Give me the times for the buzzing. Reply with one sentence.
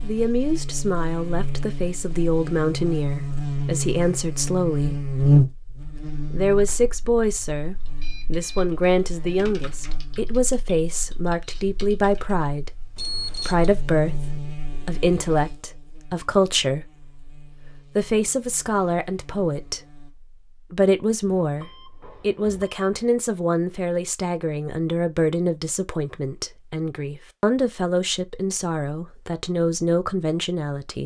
You can hear the buzzing from 0.0 to 20.1 s.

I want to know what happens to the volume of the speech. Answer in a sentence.
The volume of the speech stays about the same.